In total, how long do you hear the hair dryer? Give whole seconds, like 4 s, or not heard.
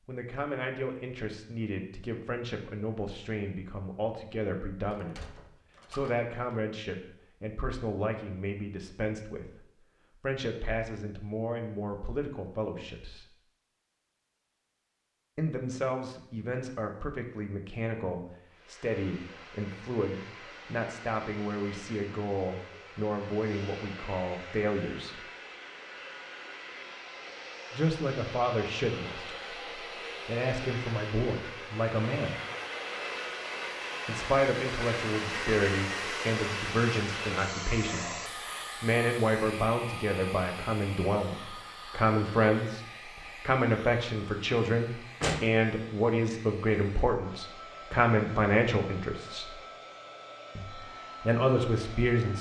34 s.